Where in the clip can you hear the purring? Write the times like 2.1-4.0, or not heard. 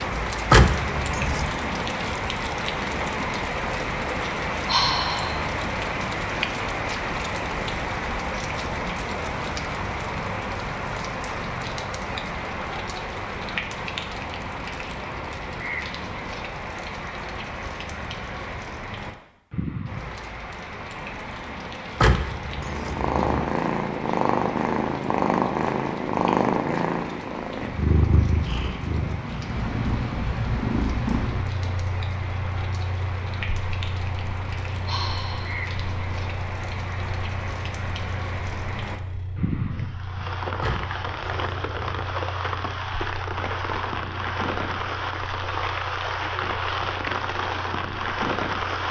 22.5-48.8.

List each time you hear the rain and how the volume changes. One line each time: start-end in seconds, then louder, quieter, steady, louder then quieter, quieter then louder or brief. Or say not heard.
0.0-48.8 quieter then louder.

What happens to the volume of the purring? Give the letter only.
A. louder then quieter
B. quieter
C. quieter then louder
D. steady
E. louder
B.